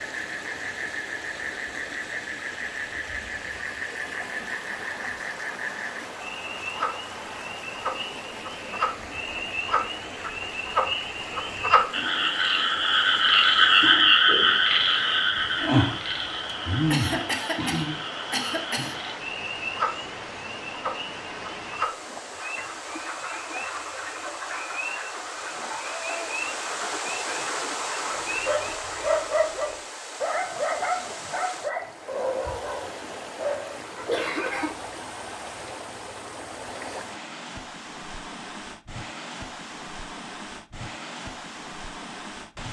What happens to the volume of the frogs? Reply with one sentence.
The loudness of the frogs goes up, then down.